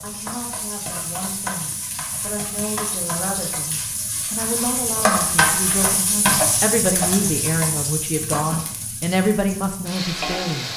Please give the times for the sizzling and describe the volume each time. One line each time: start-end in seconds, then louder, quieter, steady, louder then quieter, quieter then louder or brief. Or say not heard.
0.0-10.7 louder then quieter.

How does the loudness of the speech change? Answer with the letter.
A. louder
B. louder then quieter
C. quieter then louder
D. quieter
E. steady
A.